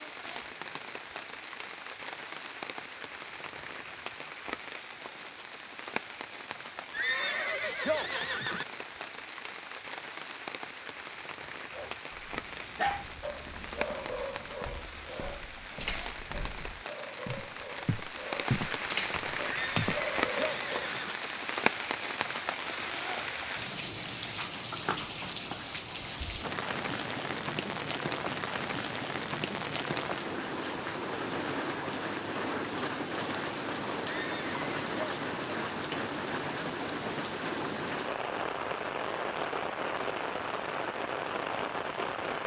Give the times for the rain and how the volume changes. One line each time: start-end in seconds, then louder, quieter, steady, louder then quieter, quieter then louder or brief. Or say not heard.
0.0-42.4 louder.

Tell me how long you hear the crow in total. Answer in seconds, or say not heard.
not heard.